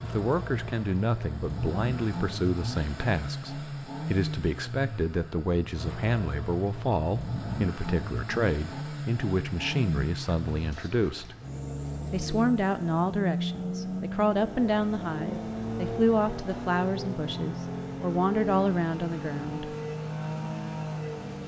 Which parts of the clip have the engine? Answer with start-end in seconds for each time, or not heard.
0.0-21.4.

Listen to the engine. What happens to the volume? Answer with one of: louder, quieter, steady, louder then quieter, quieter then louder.
steady.